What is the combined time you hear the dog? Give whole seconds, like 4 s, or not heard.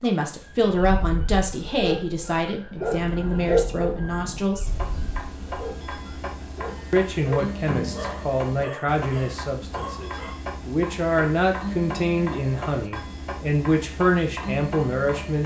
10 s.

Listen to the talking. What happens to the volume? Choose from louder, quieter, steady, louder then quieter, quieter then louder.
steady.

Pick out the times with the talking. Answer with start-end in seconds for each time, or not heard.
0.0-4.7, 6.9-15.4.